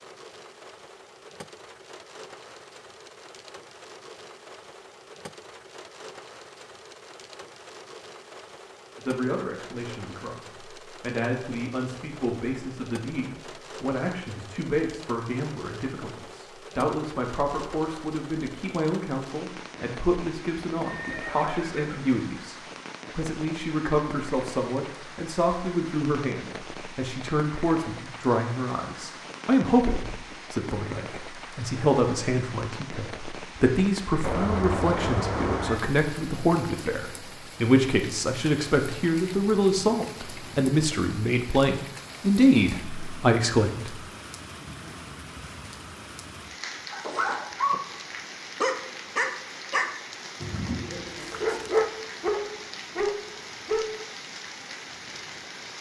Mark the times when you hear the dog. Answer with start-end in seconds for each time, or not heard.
46.9-47.8, 48.6-53.9.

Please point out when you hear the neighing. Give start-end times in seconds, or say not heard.
20.8-22.2, 34.2-35.9.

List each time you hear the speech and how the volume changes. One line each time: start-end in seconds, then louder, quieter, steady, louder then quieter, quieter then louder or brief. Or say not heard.
8.9-44.0 louder.